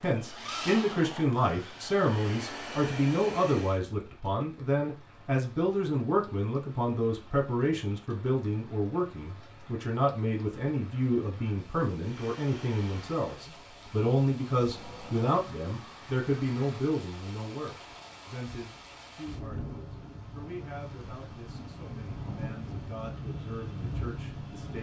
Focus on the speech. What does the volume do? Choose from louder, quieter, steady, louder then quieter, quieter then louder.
quieter.